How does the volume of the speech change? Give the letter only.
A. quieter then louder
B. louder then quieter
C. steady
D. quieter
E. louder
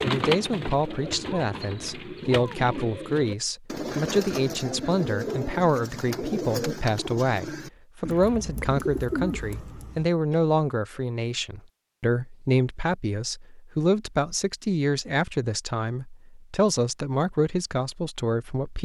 C.